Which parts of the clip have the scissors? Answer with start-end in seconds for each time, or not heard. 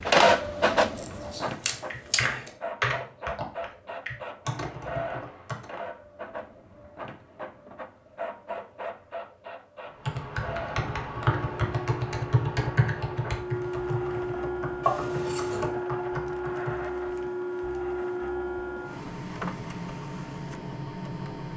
0.9-2.5, 14.8-15.7.